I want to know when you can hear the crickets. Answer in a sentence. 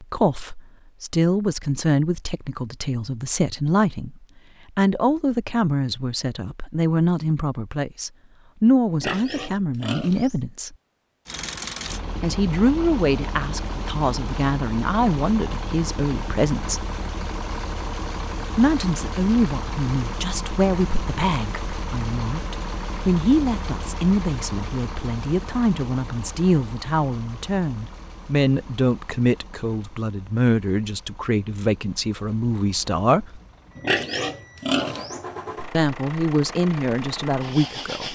You can't hear the crickets here.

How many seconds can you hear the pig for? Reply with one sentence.
You can hear the pig for 3 seconds altogether.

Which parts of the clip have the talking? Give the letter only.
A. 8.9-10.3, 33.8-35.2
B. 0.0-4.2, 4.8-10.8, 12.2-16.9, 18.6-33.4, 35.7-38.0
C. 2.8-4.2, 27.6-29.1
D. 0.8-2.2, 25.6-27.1
B.